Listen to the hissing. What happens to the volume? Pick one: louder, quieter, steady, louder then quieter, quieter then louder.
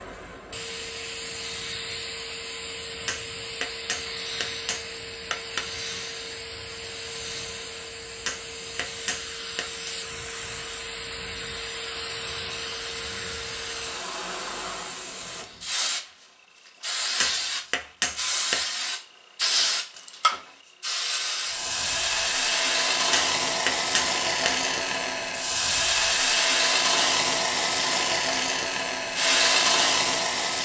louder.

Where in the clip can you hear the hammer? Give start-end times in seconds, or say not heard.
3.0-5.7, 8.2-9.9, 17.2-18.6, 23.1-24.6.